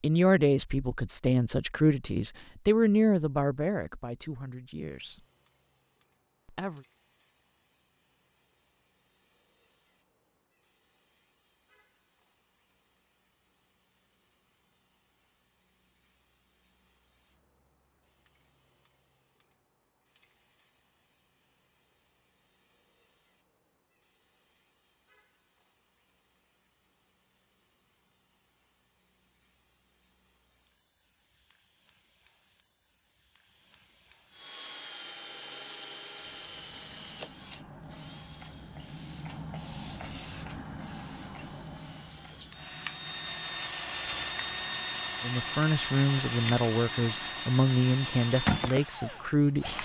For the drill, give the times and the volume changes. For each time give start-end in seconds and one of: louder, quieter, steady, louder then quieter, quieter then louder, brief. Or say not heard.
34.3-49.7 quieter then louder.